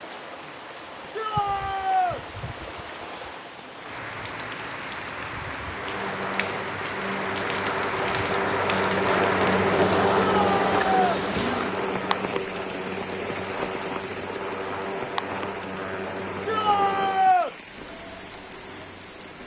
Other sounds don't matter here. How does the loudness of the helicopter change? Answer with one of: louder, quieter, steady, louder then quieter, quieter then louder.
louder then quieter.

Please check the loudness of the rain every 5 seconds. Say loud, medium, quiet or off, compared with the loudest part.
medium, loud, loud, medium.